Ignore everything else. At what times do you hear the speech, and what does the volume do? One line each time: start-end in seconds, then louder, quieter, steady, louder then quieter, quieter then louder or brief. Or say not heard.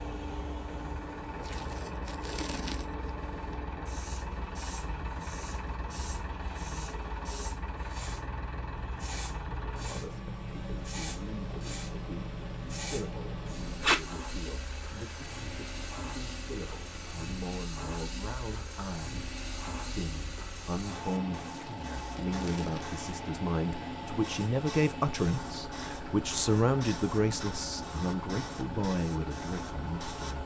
9.8-30.4 louder.